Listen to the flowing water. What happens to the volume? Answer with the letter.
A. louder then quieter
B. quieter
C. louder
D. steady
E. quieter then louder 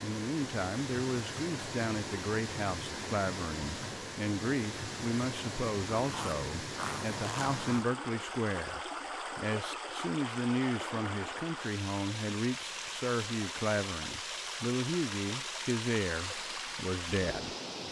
D.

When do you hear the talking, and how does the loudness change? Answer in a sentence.
The talking can be heard from 0.0 to 17.6 s, at a steady volume.